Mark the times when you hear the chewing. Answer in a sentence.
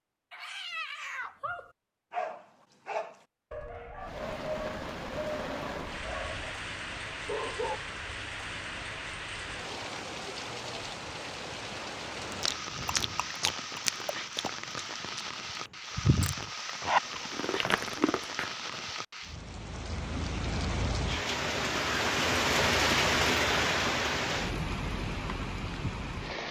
You can hear the chewing from 12.3 to 18.9 s.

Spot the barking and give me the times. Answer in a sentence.
You can hear the barking from 0.3 to 6.5 s and from 7.2 to 7.8 s.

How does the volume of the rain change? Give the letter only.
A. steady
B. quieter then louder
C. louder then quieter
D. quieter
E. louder
E.